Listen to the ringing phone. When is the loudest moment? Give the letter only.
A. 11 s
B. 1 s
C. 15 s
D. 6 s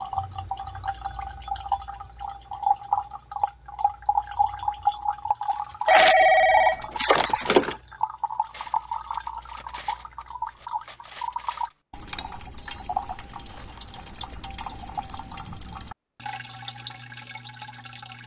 D.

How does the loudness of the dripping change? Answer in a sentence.
The loudness of the dripping goes down.